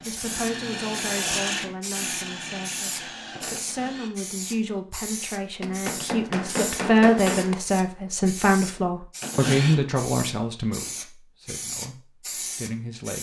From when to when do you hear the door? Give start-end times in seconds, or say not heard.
not heard.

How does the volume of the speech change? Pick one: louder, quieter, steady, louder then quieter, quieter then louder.
louder then quieter.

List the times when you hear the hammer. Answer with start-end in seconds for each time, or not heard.
5.6-7.5.